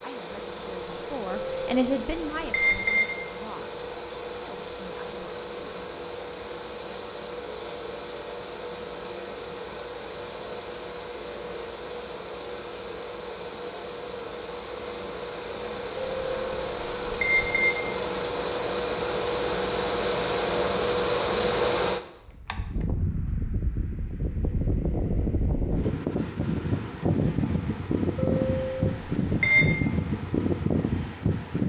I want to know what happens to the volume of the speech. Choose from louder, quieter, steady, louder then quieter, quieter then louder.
louder then quieter.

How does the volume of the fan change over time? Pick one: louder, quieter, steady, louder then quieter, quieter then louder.
louder.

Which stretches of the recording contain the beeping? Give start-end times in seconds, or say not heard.
1.2-3.0, 15.9-17.7, 28.1-29.6.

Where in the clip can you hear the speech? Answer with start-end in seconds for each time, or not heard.
0.0-5.8.